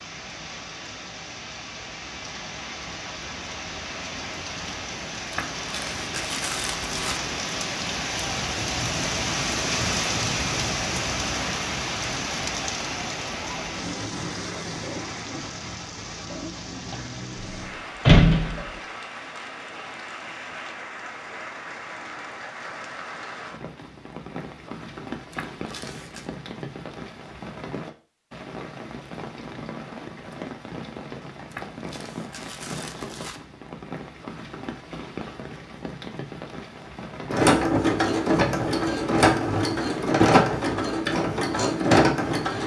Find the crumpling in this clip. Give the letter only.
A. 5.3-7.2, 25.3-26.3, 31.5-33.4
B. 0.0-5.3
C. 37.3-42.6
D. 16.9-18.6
A.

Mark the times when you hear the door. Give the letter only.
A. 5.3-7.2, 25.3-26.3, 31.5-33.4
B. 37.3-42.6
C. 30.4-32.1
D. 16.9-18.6
D.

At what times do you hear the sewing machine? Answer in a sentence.
The sewing machine can be heard from 37.3 to 42.6 s.